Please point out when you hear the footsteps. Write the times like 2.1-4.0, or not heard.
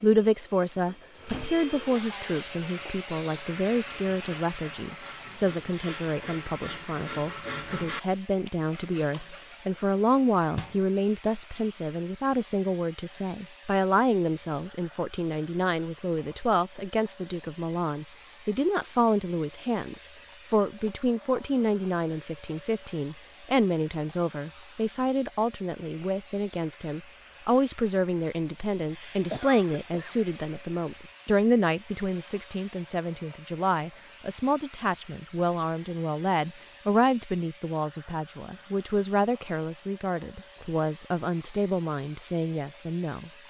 not heard.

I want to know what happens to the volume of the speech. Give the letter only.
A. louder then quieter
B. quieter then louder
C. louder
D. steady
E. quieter
D.